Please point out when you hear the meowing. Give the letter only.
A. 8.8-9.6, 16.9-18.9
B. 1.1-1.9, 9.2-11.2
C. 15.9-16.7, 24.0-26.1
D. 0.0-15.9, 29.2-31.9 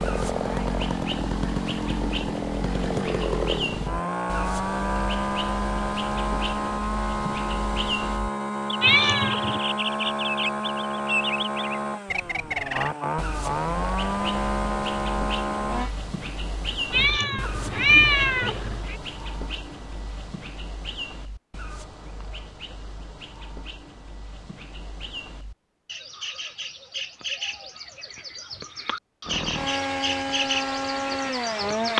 A.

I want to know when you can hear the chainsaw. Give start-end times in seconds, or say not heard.
0.0-15.9, 29.2-31.9.